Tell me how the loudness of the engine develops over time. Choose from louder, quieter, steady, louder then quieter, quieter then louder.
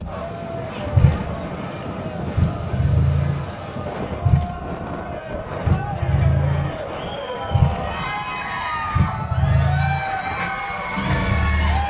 steady.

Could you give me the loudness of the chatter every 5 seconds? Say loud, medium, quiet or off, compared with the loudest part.
medium, loud, loud.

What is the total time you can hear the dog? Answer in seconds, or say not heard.
not heard.